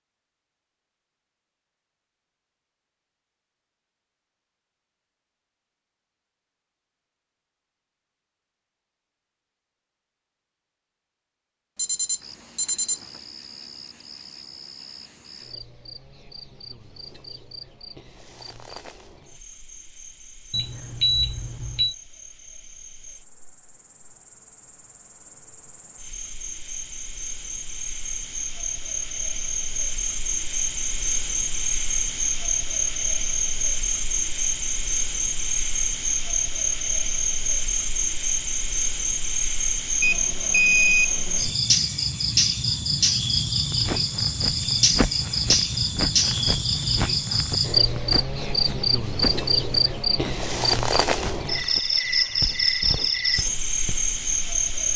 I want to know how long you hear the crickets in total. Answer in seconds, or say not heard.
43 s.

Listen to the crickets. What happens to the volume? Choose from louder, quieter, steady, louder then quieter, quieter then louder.
louder.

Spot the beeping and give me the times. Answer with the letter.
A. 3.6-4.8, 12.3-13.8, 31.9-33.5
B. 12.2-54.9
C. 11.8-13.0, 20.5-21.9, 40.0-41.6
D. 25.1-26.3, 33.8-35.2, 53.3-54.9
C.